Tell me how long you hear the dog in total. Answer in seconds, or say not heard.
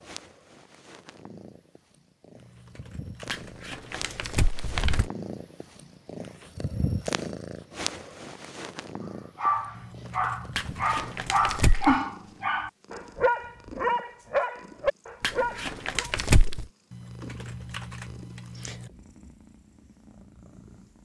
7 s.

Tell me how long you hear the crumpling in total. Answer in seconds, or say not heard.
5 s.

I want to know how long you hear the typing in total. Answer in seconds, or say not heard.
6 s.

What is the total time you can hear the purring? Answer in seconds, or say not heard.
21 s.